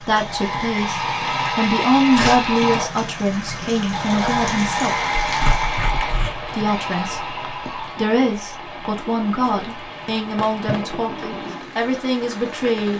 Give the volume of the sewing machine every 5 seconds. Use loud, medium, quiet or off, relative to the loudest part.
loud, medium, quiet.